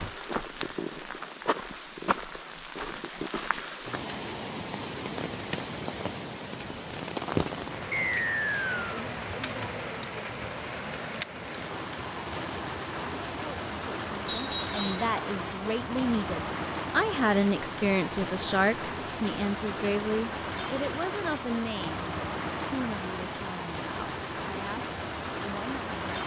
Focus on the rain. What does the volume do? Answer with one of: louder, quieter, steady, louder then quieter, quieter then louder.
steady.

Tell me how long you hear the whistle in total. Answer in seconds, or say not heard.
2 s.